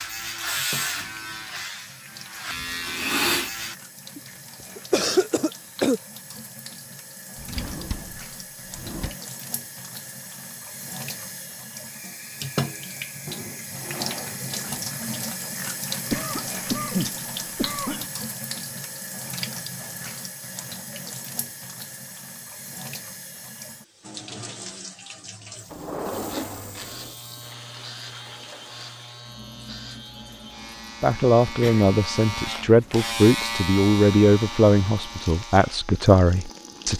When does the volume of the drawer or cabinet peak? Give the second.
26 s.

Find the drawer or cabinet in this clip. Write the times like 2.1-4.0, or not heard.
7.3-9.2, 13.2-14.9, 25.6-27.1.